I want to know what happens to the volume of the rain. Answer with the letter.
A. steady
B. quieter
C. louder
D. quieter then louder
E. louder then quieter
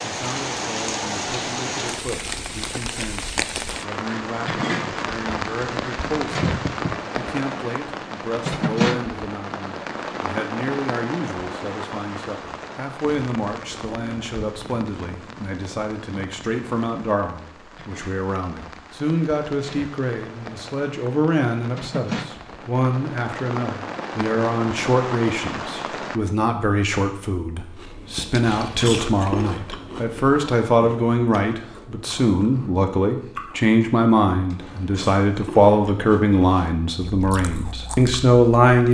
D.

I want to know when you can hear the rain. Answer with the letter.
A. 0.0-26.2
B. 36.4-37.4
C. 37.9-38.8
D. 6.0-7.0
A.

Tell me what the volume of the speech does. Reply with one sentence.
The volume of the speech goes up.